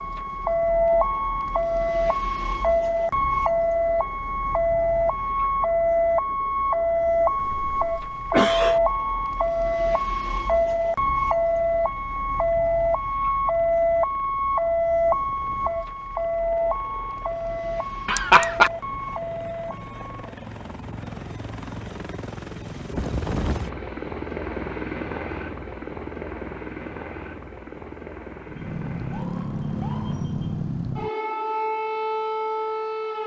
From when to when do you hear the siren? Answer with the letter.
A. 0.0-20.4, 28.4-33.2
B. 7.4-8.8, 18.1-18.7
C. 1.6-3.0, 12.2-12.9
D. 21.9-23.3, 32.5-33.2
A.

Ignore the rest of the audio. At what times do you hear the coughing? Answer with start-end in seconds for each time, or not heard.
7.4-8.8, 18.1-18.7.